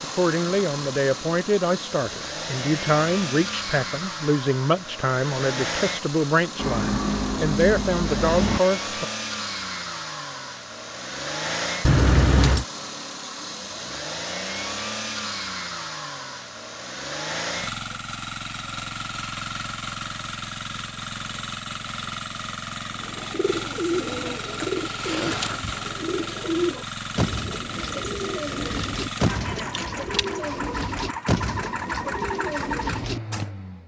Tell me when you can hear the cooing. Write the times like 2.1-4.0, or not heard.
22.9-33.5.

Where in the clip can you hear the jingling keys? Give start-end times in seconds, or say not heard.
6.5-8.6, 11.8-12.7, 27.9-30.4.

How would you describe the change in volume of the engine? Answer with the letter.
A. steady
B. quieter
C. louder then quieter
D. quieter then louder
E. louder
A.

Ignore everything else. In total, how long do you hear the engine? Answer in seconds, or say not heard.
34 s.